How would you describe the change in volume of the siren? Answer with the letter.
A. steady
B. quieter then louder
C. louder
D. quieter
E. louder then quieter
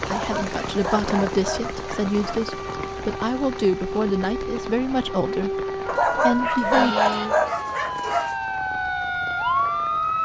C.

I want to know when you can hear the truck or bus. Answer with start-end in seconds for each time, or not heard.
not heard.